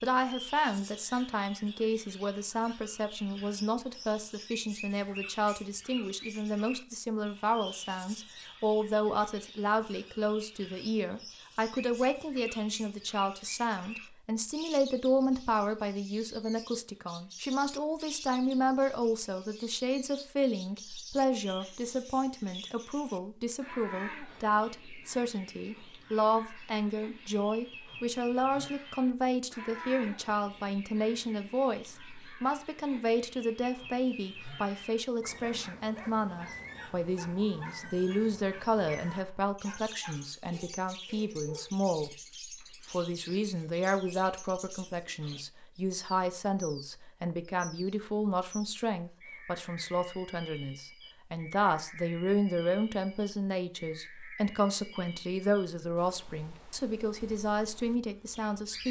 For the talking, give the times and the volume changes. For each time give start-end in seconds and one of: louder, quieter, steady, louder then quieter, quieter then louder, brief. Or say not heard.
0.0-42.1 steady
42.9-58.8 steady.